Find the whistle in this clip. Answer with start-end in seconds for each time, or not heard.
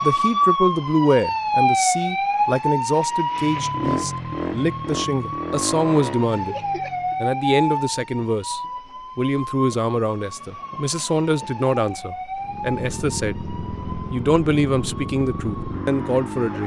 not heard.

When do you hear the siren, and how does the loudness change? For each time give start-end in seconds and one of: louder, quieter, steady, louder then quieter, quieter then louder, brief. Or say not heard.
0.0-16.6 quieter.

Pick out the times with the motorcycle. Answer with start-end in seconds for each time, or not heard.
3.3-7.3, 12.4-16.6.